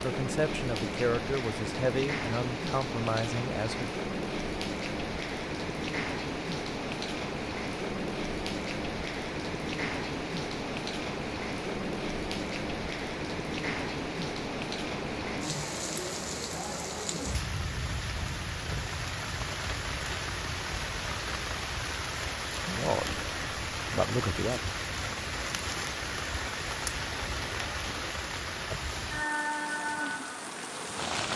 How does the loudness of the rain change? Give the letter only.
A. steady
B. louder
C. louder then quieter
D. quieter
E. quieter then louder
A.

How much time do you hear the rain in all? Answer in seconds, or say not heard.
31 s.